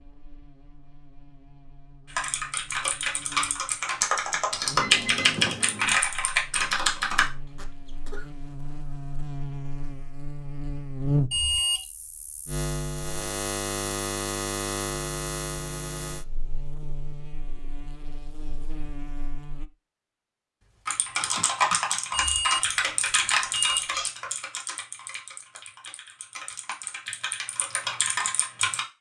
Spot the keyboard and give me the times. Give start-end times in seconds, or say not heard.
2.0-7.3, 20.9-28.9.